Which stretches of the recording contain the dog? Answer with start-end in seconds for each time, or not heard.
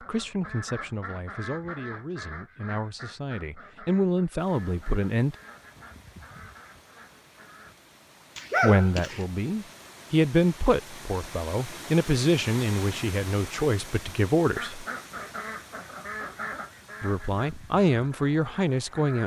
8.3-9.2.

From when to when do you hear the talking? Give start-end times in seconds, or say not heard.
0.0-5.3, 8.6-14.8, 17.0-19.2.